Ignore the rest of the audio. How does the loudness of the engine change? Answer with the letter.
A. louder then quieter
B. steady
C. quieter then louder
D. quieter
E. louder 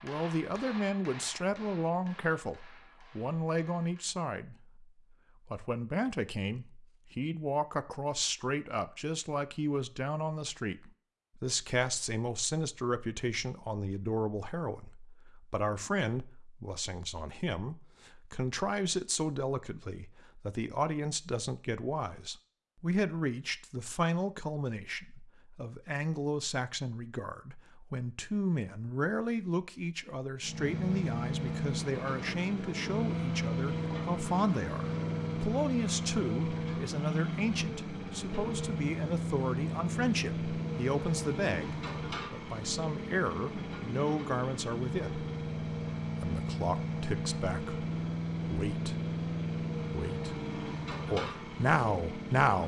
B.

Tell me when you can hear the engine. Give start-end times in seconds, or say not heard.
30.4-52.6.